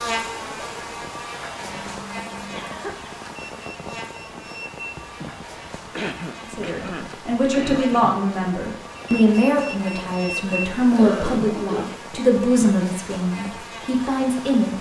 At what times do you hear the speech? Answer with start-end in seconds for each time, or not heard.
6.4-14.7.